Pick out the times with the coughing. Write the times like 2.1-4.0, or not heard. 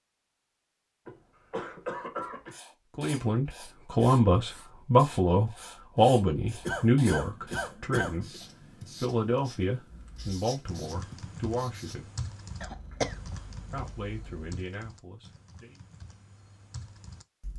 1.1-2.6, 6.7-8.4, 12.6-14.4.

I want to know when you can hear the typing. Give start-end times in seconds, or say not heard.
9.9-17.5.